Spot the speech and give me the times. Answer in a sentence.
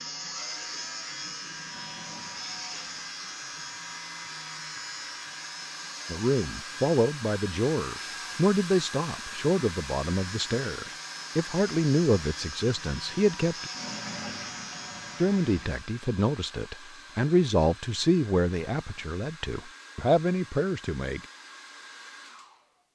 You can hear the speech from 6.1 to 13.7 s and from 15.2 to 21.2 s.